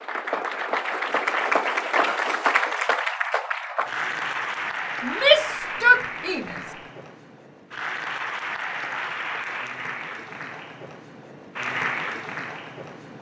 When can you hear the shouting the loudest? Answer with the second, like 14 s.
5 s.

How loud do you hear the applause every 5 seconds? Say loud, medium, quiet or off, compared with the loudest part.
loud, medium, medium.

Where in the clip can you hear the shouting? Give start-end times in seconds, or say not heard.
5.0-6.5.